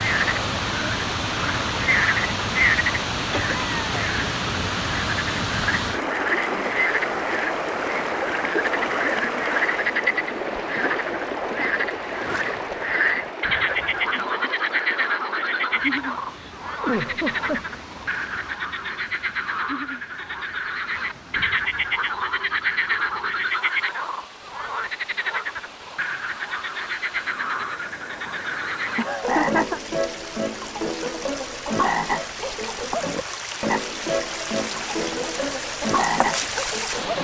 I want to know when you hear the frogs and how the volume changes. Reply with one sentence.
The frogs can be heard from 0.0 to 37.2 s, at a steady volume.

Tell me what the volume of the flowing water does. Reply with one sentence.
The loudness of the flowing water goes down, then up.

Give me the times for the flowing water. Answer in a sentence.
You can hear the flowing water from 0.0 to 37.2 s.